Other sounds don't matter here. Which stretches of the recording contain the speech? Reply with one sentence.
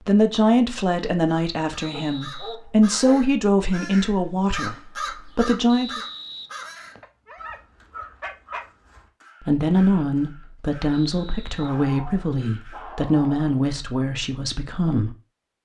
You can hear the speech from 0.1 to 6.0 s and from 9.4 to 15.1 s.